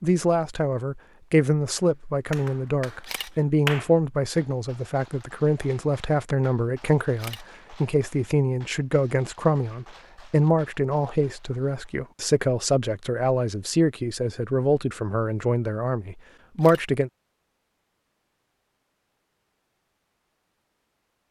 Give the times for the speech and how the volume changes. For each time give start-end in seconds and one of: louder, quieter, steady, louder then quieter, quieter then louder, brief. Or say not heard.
0.0-17.1 steady.